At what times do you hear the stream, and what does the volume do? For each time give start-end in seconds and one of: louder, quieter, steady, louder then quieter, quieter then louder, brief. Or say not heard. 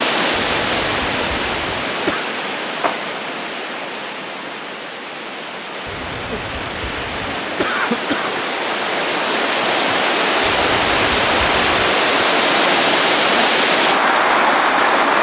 0.0-15.1 quieter then louder.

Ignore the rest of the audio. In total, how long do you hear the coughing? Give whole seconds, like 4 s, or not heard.
6 s.